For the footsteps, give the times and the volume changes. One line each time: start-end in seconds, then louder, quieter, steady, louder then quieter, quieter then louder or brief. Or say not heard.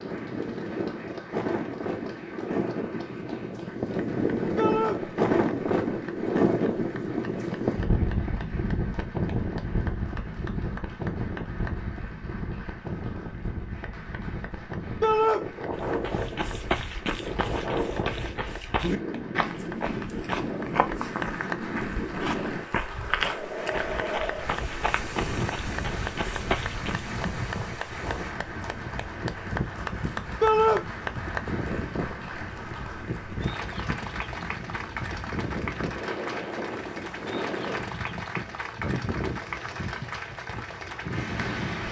15.7-27.1 steady.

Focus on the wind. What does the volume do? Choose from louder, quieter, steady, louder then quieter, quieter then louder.
quieter.